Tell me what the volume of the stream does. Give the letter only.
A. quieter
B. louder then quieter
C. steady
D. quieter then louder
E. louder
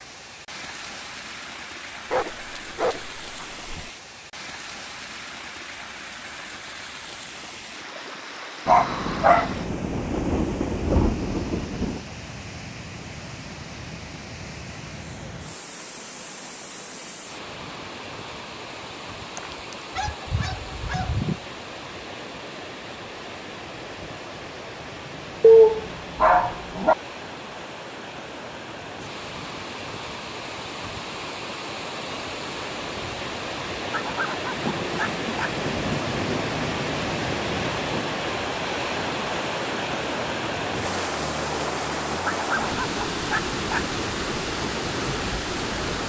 E.